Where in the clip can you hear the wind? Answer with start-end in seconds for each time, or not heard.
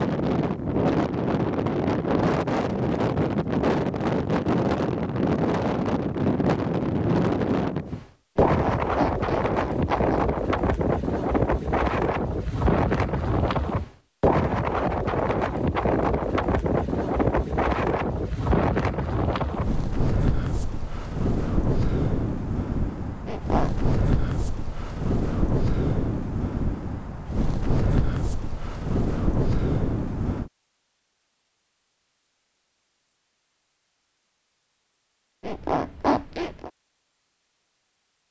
0.0-30.5.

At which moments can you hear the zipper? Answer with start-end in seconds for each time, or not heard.
8.4-10.2, 23.2-23.9, 35.4-36.7.